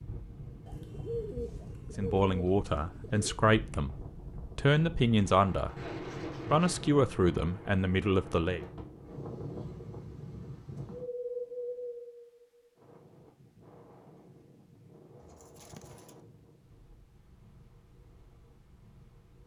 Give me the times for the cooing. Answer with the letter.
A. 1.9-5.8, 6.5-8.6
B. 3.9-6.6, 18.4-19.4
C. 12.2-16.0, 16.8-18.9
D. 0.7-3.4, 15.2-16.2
D.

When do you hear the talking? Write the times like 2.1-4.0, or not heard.
1.9-5.8, 6.5-8.6.